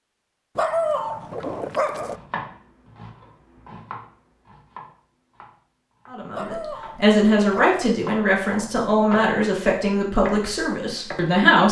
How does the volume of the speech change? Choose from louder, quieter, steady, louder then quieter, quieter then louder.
quieter.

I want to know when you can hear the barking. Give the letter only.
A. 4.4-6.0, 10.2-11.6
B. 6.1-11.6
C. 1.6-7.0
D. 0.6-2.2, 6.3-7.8
D.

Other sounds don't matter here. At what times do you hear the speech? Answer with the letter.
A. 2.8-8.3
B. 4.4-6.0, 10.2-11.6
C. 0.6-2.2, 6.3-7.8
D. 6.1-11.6
D.